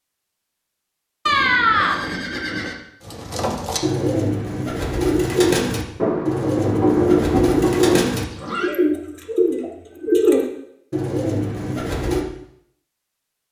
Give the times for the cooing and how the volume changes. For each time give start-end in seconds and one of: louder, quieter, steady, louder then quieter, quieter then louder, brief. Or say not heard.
3.0-12.2 steady.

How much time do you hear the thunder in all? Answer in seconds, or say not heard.
2 s.